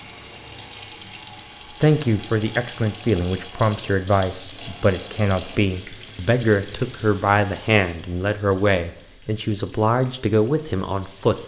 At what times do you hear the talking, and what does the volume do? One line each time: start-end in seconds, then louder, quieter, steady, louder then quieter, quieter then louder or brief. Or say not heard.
1.8-11.4 steady.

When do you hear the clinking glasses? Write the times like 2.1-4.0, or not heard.
not heard.